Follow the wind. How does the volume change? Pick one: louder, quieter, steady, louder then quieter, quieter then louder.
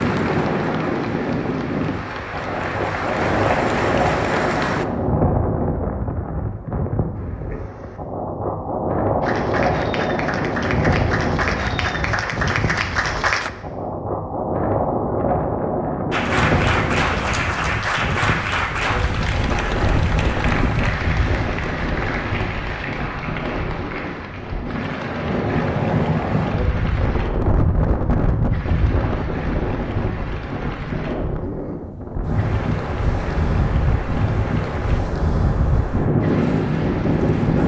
steady.